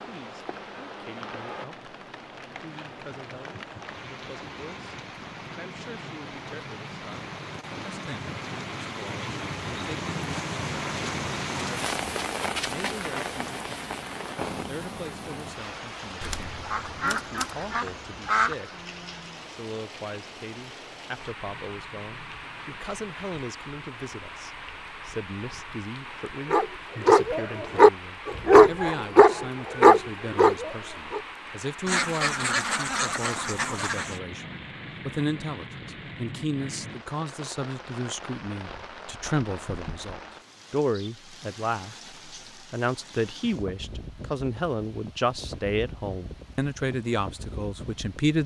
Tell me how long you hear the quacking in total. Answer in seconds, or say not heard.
5 s.